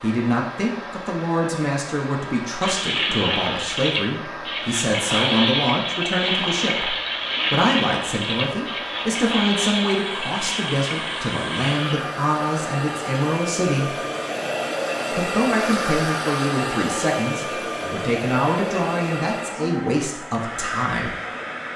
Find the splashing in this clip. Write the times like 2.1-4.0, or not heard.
2.6-12.0.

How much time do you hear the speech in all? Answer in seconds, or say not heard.
20 s.